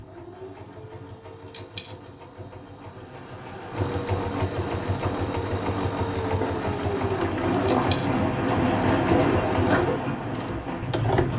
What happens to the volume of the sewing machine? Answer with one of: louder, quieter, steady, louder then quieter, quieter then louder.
louder.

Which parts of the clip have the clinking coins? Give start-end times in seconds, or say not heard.
1.4-1.9, 7.6-8.1.